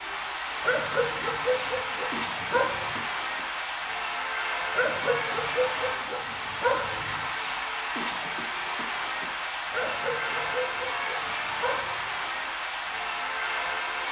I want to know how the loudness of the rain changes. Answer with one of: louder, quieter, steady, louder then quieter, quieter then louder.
steady.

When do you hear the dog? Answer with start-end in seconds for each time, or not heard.
0.6-3.0, 4.8-7.2, 9.7-12.0.